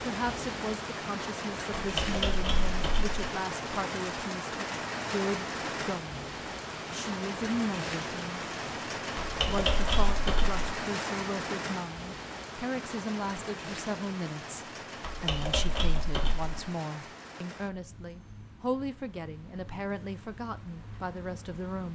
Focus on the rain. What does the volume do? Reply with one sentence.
The loudness of the rain goes down.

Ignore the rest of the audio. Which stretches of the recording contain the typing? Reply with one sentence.
The typing can be heard from 1.8 to 3.1 s, from 9.2 to 10.6 s and from 15.0 to 16.6 s.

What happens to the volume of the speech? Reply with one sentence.
The volume of the speech stays about the same.